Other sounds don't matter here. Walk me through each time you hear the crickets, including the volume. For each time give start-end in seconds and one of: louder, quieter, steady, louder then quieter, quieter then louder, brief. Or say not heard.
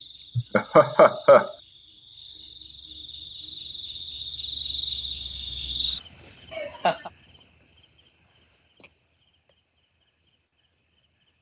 0.0-11.3 louder then quieter.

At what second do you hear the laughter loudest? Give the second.
1 s.